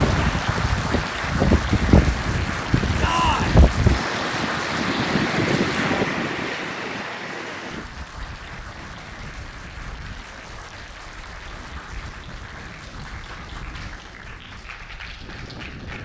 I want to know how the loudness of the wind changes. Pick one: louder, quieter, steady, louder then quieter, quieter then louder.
quieter.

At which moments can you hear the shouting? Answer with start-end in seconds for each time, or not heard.
3.0-3.6.